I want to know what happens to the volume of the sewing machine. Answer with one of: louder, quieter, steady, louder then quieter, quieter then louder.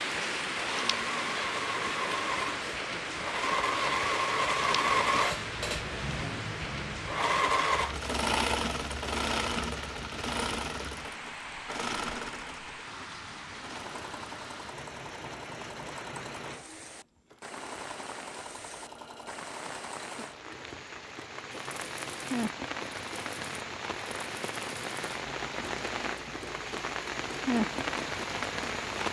quieter.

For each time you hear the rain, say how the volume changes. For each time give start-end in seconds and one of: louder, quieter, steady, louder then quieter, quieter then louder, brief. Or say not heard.
0.0-29.0 quieter then louder.